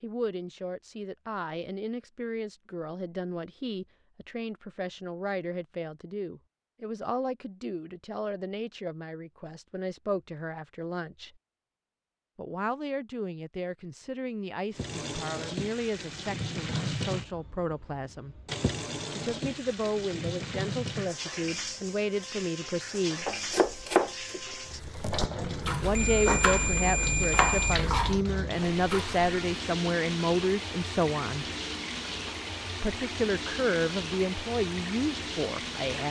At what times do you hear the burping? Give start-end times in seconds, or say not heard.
not heard.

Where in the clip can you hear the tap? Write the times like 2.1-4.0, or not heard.
14.7-36.0.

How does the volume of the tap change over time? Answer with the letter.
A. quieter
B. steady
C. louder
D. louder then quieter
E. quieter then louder
B.